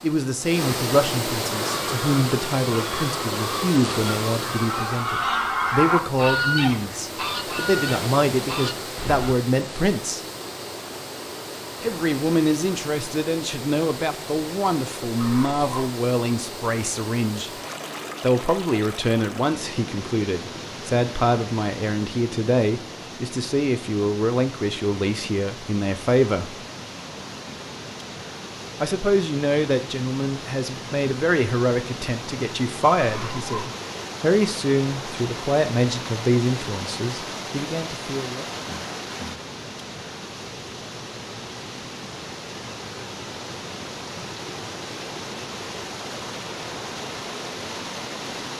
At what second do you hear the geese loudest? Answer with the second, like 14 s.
6 s.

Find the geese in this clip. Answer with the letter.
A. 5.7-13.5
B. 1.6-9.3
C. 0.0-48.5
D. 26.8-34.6
B.